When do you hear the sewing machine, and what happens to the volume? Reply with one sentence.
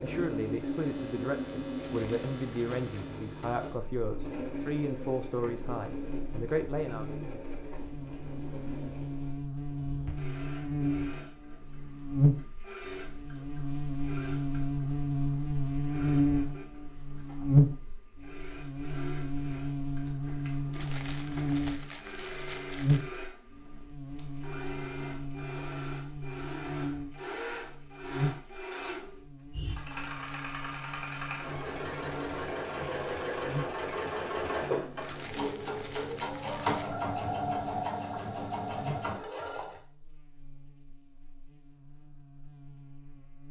The sewing machine can be heard from 0.0 to 39.8 s, getting quieter then louder.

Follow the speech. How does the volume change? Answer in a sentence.
The volume of the speech stays about the same.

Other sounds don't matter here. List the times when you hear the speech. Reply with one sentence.
The speech can be heard from 0.0 to 7.2 s.